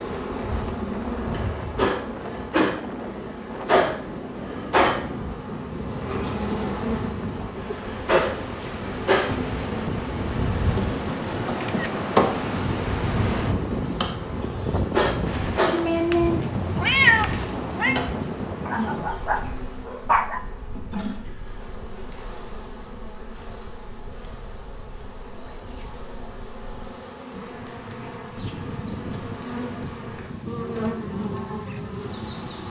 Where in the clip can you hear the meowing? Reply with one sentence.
You can hear the meowing from 15.7 to 18.0 s.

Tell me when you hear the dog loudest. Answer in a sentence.
The volume of the dog peaks at 20 seconds.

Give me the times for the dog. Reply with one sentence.
The dog can be heard from 18.6 to 20.4 s.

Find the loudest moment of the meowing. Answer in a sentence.
The loudest moment of the meowing is at 17 seconds.